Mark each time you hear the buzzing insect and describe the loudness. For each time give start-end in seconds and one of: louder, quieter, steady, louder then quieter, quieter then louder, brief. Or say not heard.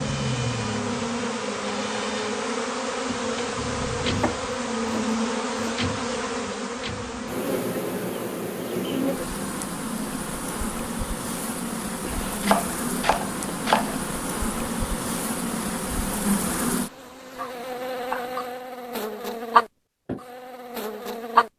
0.0-21.5 steady.